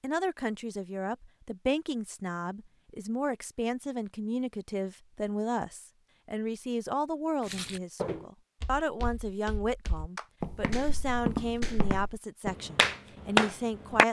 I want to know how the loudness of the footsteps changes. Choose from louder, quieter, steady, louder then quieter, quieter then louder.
quieter then louder.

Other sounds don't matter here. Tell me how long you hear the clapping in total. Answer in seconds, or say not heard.
4 s.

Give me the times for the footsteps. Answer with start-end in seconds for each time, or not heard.
7.4-12.6.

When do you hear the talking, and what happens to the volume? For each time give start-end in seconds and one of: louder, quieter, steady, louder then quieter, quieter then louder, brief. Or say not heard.
0.0-14.0 steady.